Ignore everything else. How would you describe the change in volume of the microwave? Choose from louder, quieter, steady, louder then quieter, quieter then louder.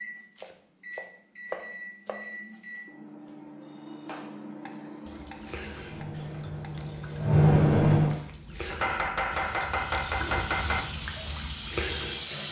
louder.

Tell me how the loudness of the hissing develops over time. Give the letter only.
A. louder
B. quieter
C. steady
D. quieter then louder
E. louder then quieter
A.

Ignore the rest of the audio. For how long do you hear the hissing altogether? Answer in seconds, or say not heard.
4 s.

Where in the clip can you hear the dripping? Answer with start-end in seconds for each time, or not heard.
5.0-12.2.